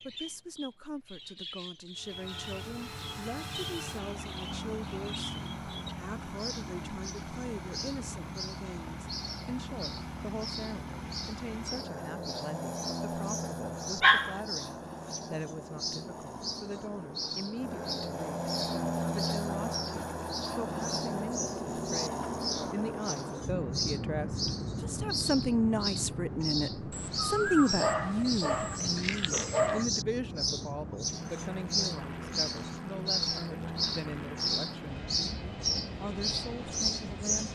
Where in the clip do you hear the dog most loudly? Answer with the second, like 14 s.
14 s.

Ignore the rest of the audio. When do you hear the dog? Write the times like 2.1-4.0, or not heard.
14.0-14.4, 26.9-29.9.